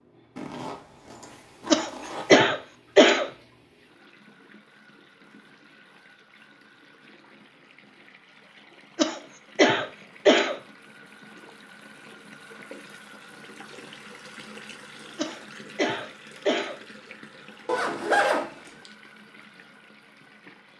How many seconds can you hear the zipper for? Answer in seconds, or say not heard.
3 s.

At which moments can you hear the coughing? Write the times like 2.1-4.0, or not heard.
1.7-3.3, 8.9-10.6, 15.2-16.8.